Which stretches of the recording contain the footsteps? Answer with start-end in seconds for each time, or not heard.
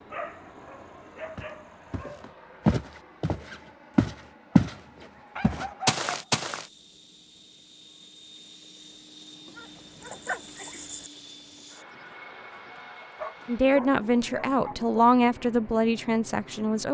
1.4-4.8, 5.4-6.7.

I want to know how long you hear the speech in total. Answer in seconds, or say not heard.
3 s.